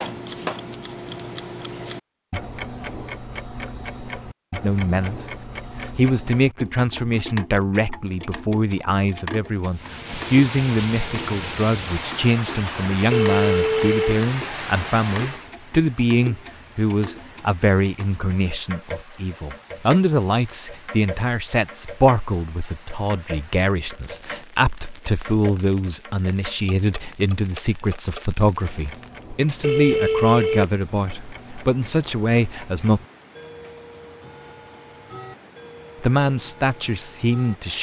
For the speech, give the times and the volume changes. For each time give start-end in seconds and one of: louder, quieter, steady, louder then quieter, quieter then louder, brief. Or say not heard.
4.6-5.2 brief
5.8-33.0 steady
36.0-37.7 brief.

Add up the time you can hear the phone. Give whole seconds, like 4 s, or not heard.
2 s.